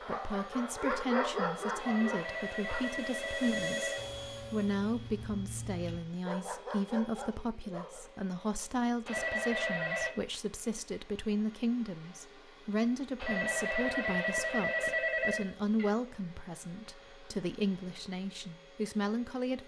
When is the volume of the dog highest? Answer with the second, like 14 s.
1 s.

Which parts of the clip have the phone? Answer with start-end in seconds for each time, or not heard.
1.8-4.0, 9.1-10.2, 13.2-15.9.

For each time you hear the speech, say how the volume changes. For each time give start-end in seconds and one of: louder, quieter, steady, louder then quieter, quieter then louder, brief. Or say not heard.
0.0-19.6 steady.